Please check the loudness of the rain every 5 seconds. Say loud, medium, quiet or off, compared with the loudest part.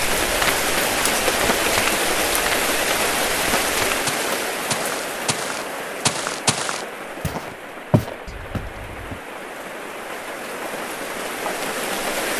loud, medium, medium.